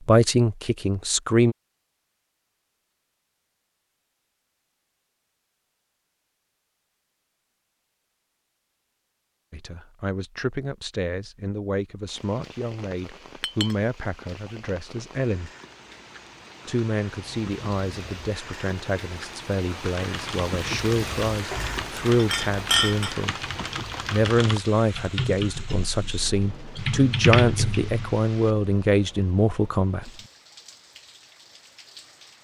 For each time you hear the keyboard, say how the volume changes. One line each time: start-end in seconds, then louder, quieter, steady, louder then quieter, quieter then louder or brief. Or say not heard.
19.8-28.2 louder.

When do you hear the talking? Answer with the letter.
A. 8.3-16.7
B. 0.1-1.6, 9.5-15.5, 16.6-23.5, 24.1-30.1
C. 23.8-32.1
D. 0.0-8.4
B.